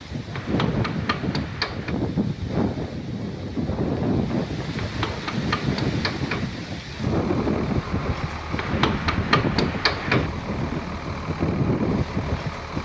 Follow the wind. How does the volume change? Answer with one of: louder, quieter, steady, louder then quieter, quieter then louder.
steady.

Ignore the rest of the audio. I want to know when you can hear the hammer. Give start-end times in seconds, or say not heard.
0.3-1.9, 4.8-6.5, 8.6-10.3.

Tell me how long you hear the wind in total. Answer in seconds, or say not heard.
13 s.